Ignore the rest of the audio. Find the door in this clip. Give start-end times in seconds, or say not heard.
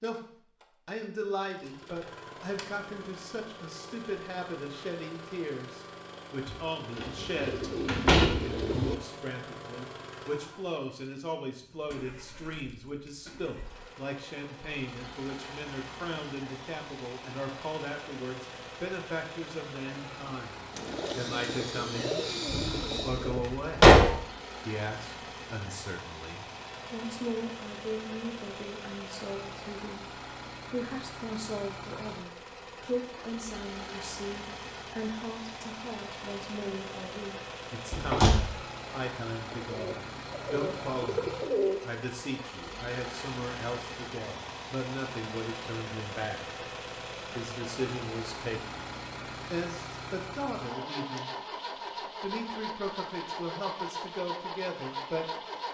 6.5-7.0, 7.8-8.3, 22.4-24.1, 37.9-38.5.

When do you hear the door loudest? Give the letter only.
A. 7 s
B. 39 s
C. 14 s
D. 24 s
D.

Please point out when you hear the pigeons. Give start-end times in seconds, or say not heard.
7.0-8.9, 20.7-23.4, 39.5-41.9.